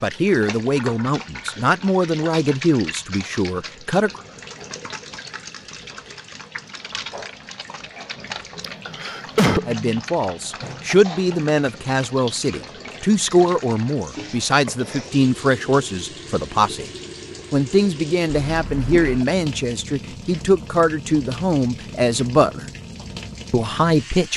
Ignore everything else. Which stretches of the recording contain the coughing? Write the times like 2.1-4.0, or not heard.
8.6-9.7, 18.2-19.2.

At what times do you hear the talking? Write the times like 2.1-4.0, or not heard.
0.0-4.2, 9.7-16.9, 17.5-22.6, 23.5-24.3.